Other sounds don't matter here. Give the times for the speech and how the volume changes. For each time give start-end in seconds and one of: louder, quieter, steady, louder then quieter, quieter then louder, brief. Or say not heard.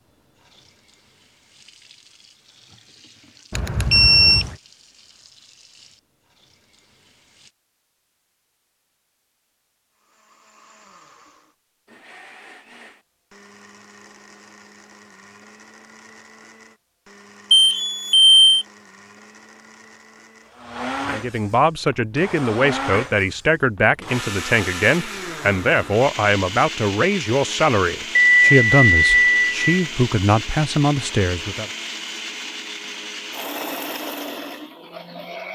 21.1-31.7 steady.